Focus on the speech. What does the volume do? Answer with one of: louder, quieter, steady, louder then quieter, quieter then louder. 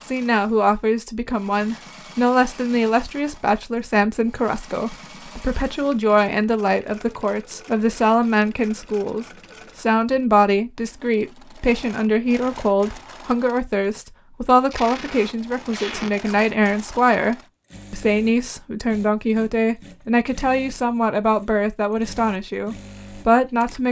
steady.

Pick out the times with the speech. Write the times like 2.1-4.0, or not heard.
0.1-23.8.